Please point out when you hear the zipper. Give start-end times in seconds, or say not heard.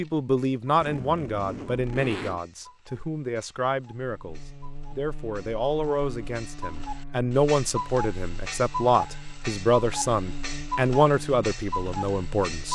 0.8-2.4.